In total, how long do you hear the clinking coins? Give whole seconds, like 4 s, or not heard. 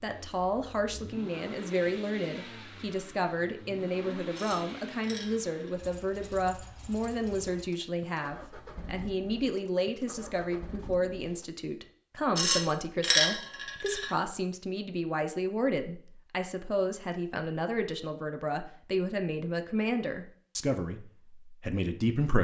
3 s.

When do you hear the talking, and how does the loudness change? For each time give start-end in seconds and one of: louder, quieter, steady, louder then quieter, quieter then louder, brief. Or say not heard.
0.0-22.3 steady.